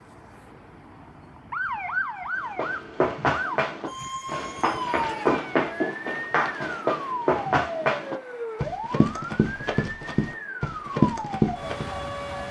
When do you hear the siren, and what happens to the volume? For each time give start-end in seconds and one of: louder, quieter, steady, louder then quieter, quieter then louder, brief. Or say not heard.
0.0-12.4 steady.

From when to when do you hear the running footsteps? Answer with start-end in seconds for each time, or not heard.
2.5-11.9.